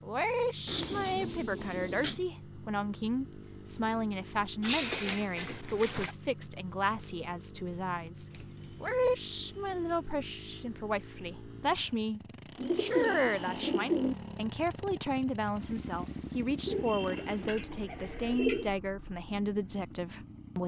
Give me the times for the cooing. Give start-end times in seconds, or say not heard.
0.7-2.2, 4.6-6.2, 8.3-10.1, 12.6-14.2, 16.6-18.8.